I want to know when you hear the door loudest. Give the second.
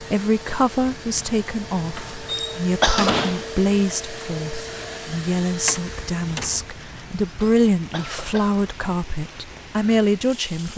3 s.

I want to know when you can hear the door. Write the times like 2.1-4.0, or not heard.
1.9-3.5, 5.7-6.7.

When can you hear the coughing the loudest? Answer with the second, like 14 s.
3 s.